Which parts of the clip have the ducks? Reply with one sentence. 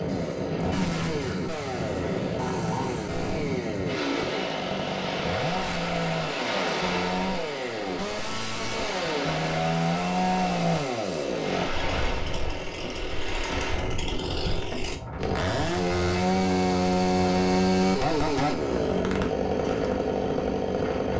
The ducks can't be heard in this clip.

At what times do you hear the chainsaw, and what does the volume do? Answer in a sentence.
You can hear the chainsaw from 0.0 to 21.1 s, getting louder.